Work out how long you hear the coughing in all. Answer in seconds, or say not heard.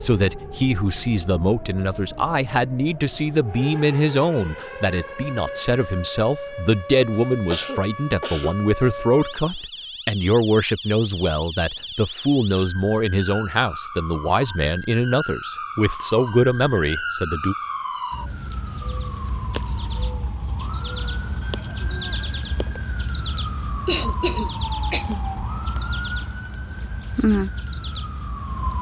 3 s.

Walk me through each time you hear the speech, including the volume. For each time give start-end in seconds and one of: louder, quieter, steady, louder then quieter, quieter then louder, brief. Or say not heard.
0.0-17.6 steady.